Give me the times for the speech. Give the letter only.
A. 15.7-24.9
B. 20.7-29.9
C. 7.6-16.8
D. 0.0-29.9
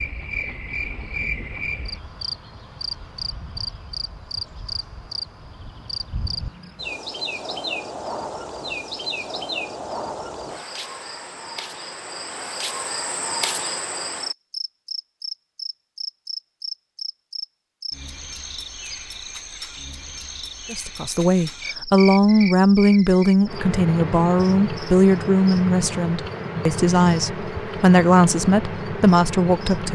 B.